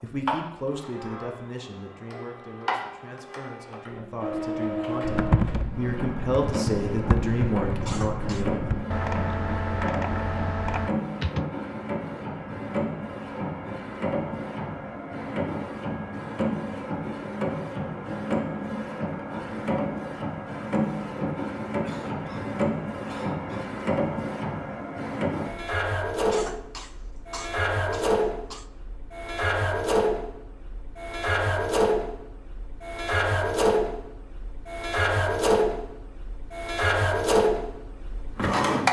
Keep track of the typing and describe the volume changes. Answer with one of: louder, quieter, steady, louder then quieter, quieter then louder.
steady.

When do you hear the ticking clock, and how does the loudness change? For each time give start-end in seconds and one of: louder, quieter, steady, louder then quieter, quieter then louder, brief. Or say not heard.
not heard.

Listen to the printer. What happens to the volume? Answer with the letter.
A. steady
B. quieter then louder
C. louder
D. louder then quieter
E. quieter
C.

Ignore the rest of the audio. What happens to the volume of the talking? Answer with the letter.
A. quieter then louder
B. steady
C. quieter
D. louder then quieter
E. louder
A.